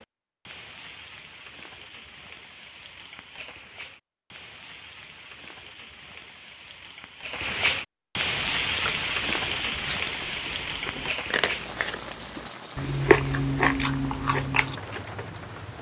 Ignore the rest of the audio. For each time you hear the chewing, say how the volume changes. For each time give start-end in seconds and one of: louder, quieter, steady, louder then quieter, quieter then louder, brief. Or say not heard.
8.3-14.8 louder.